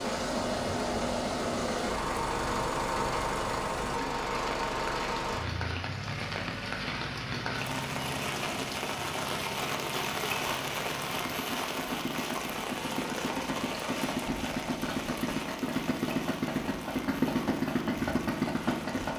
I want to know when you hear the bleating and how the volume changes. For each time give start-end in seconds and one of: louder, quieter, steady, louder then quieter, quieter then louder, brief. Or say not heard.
not heard.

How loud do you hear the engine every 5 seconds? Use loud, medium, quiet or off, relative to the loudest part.
loud, medium, medium, loud.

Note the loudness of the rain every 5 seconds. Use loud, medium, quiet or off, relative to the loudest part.
medium, loud, loud, medium.